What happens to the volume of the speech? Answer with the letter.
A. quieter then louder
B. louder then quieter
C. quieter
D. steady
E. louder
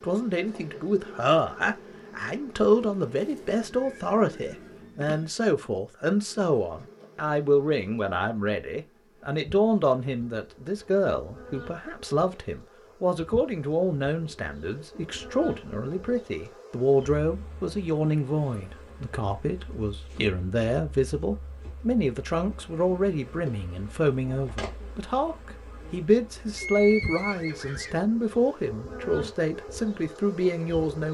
D.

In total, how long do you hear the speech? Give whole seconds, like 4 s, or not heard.
31 s.